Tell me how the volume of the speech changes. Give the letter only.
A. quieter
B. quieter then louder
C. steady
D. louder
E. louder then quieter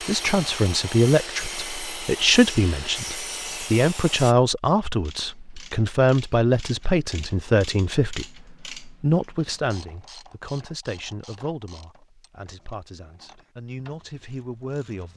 A.